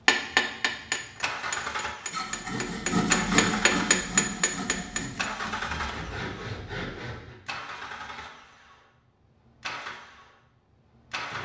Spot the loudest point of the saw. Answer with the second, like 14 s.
3 s.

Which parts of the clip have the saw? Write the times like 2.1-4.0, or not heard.
2.0-7.3.